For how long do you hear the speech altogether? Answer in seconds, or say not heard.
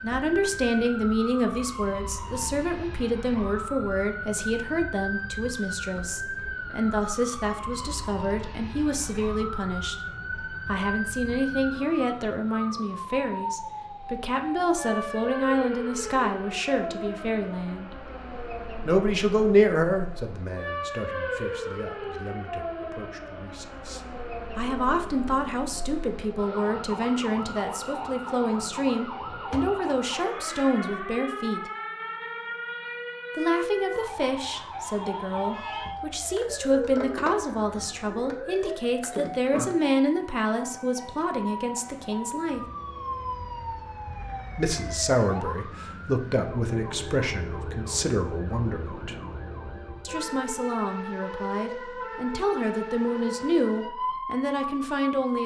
49 s.